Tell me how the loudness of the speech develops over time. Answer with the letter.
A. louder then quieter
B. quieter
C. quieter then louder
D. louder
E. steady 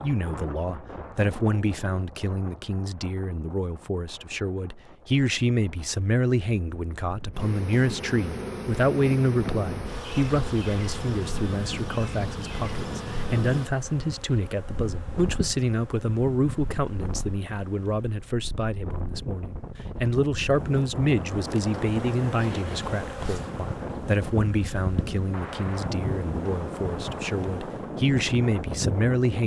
E.